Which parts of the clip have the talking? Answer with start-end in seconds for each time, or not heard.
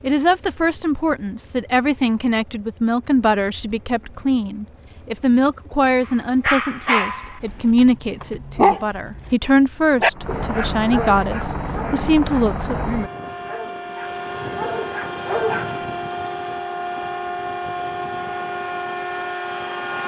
0.0-12.8.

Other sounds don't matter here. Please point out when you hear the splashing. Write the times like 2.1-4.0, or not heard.
not heard.